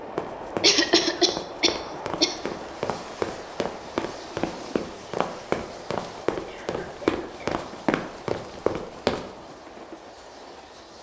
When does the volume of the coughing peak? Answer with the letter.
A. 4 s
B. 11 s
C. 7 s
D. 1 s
D.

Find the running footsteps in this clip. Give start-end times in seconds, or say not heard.
0.1-9.2.